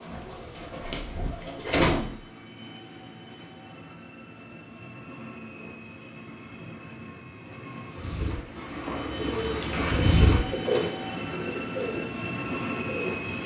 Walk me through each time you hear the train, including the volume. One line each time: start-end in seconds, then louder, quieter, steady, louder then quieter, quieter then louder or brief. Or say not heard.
0.0-13.4 louder.